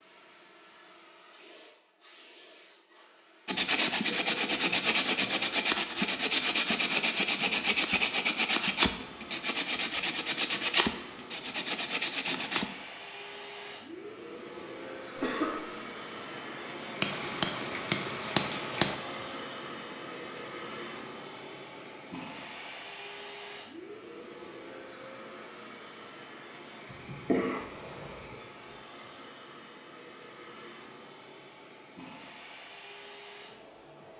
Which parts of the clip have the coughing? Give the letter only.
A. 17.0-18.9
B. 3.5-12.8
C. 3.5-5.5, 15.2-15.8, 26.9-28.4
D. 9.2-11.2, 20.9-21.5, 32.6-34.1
C.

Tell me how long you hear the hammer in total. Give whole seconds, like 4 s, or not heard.
2 s.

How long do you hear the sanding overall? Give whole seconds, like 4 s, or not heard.
9 s.